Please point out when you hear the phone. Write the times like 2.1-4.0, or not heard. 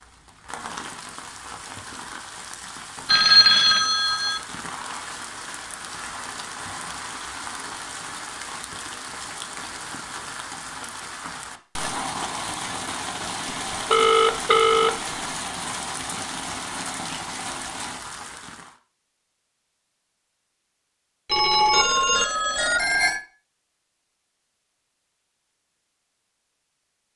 3.0-4.4, 13.9-14.9, 21.3-23.2.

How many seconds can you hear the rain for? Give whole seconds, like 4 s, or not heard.
19 s.